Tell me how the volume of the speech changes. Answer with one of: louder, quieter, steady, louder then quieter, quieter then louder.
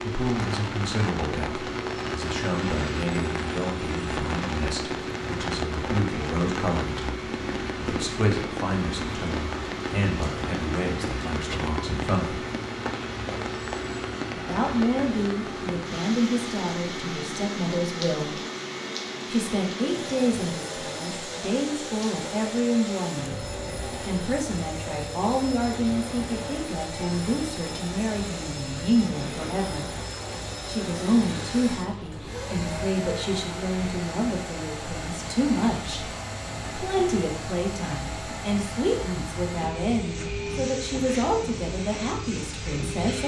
steady.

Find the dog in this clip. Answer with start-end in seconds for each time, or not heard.
not heard.